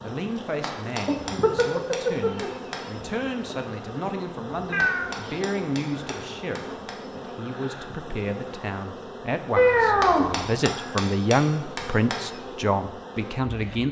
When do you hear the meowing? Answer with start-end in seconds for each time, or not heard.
1.1-2.5, 4.7-5.7, 9.6-10.6.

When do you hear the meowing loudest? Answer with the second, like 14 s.
10 s.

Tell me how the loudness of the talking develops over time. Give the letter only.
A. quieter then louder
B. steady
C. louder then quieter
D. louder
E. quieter
D.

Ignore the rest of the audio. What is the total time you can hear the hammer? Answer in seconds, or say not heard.
7 s.